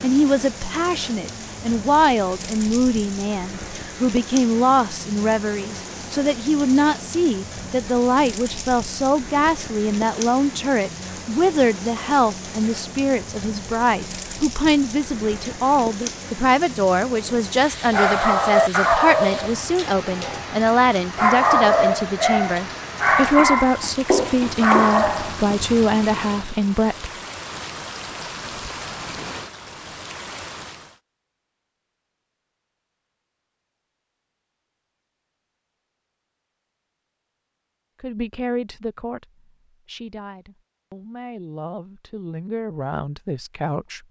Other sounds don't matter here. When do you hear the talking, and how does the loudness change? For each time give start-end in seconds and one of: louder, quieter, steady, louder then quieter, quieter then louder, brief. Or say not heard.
0.0-27.1 steady
38.0-44.0 quieter then louder.